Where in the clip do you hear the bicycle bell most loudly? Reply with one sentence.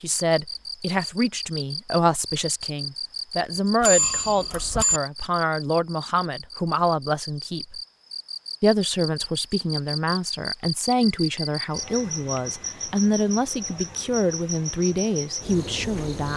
The loudest moment of the bicycle bell is at 4 seconds.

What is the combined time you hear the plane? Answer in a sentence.
You can't hear the plane here.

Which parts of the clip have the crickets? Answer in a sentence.
You can hear the crickets from 0.1 to 16.3 s.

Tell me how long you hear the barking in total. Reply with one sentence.
The barking can't be heard in this clip.